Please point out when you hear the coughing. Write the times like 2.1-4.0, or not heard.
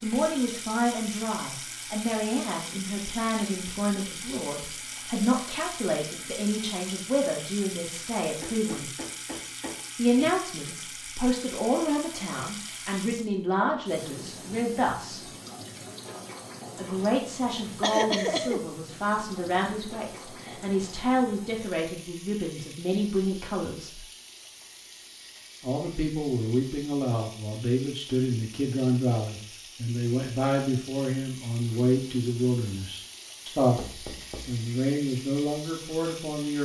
17.8-18.6.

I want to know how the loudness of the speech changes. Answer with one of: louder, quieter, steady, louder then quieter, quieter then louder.
steady.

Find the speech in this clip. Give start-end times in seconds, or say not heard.
0.0-8.9, 9.9-15.3, 16.8-24.1, 25.6-36.6.